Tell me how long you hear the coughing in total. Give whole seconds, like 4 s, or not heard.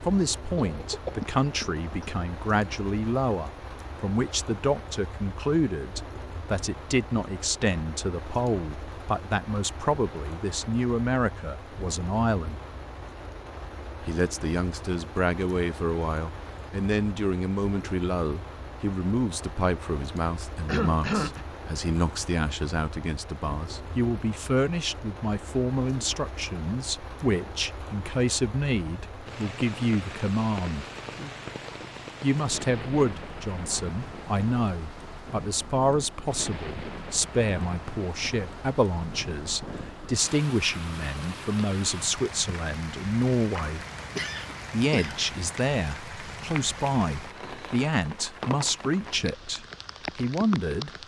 4 s.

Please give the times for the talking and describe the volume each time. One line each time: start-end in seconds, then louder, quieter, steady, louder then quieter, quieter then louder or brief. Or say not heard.
0.0-12.6 steady
14.0-30.9 steady
32.2-43.9 steady
44.7-50.9 steady.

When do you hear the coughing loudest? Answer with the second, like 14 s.
21 s.